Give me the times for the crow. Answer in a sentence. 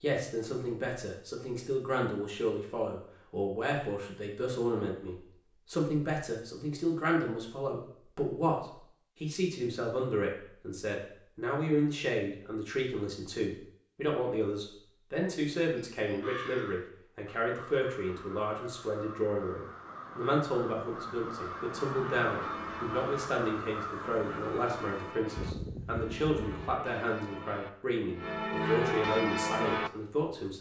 You can hear the crow from 16.0 to 26.8 s.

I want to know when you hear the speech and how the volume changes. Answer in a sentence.
You can hear the speech from 0.0 to 30.5 s, at a steady volume.